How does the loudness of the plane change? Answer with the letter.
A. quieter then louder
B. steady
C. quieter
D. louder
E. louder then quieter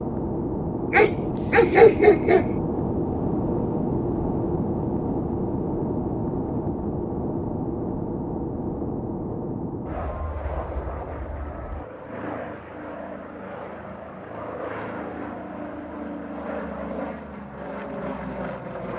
C.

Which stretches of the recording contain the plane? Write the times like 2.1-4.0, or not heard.
0.0-18.9.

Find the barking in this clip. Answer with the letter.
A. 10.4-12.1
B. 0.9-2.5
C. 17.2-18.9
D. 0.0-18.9
B.